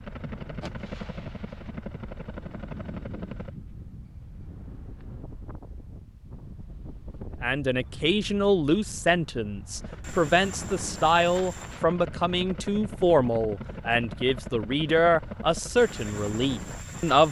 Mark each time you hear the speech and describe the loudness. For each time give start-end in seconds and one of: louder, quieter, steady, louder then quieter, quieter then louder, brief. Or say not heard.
7.4-17.2 steady.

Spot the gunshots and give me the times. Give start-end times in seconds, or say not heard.
0.6-1.8.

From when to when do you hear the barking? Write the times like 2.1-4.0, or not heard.
not heard.